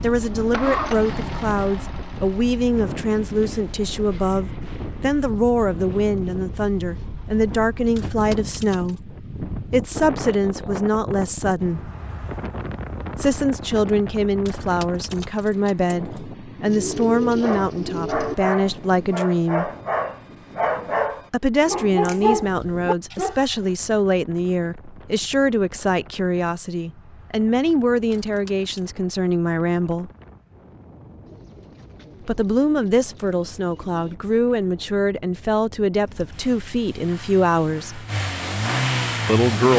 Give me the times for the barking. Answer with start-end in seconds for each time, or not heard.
17.4-23.4.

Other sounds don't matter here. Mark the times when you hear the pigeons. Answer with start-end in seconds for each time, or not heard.
16.6-18.4, 31.2-34.1.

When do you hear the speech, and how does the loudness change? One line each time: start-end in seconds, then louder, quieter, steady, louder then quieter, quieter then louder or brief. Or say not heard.
0.0-11.9 steady
13.2-19.7 steady
21.3-30.1 steady
32.2-38.0 steady
39.2-39.7 brief.